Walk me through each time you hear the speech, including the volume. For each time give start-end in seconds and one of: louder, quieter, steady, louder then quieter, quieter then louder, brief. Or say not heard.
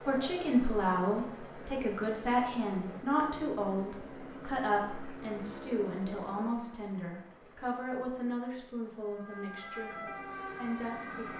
0.1-11.3 quieter.